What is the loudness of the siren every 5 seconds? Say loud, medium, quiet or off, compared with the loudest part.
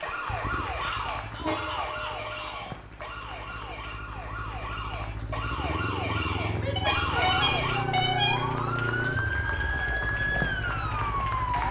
medium, loud, loud.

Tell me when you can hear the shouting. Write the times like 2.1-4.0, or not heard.
0.8-2.8, 6.5-7.3.